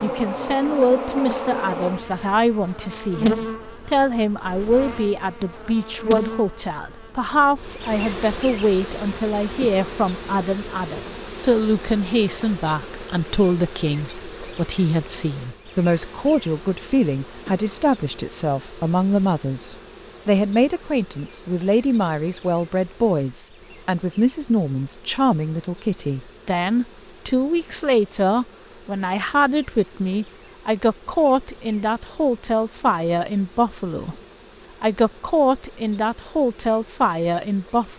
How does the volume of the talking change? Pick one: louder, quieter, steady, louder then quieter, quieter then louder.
steady.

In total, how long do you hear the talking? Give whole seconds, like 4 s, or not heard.
37 s.